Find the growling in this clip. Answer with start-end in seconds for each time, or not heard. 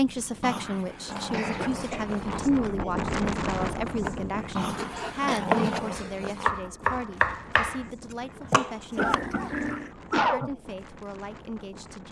0.4-2.5, 4.5-6.5, 8.9-9.9.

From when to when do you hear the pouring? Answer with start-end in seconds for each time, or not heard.
not heard.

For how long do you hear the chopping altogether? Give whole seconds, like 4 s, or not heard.
5 s.